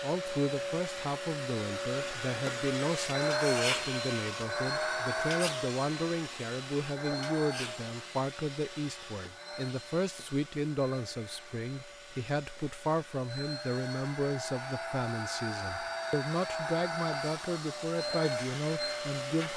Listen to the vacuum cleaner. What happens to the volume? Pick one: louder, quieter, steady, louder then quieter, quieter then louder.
quieter then louder.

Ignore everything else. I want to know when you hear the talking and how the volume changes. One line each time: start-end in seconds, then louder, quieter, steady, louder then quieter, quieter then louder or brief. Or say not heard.
0.0-19.5 steady.